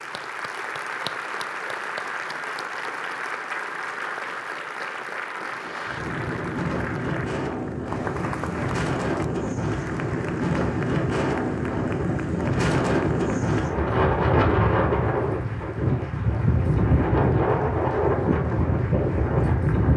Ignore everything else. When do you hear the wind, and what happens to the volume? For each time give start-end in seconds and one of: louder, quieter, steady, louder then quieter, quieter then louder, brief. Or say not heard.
5.3-19.9 louder.